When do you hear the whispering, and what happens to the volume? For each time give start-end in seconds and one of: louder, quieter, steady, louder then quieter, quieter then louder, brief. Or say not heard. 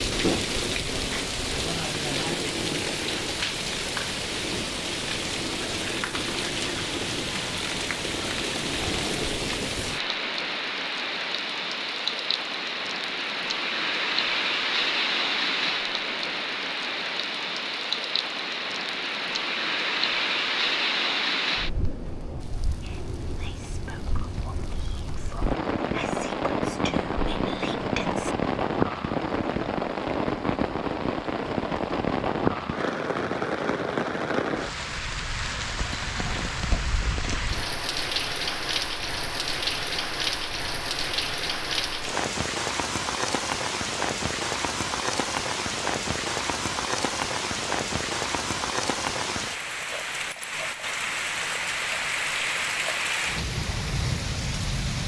22.8-28.4 louder.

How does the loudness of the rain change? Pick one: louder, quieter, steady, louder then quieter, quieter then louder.
steady.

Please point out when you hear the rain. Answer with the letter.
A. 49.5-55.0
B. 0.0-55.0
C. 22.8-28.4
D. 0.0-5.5
B.